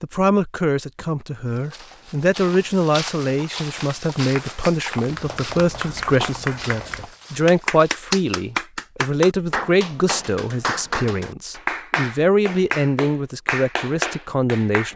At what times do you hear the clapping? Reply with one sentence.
You can hear the clapping from 4.3 to 14.9 s.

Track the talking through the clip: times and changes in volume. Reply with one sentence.
The talking can be heard from 0.0 to 14.9 s, at a steady volume.